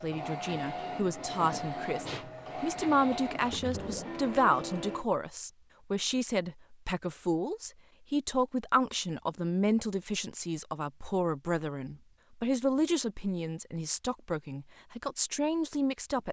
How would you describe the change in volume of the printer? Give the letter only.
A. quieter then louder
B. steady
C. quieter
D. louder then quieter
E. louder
B.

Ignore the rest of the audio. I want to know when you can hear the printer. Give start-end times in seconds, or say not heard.
0.0-5.0.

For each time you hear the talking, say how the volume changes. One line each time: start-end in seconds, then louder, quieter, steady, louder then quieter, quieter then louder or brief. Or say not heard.
0.0-16.2 steady.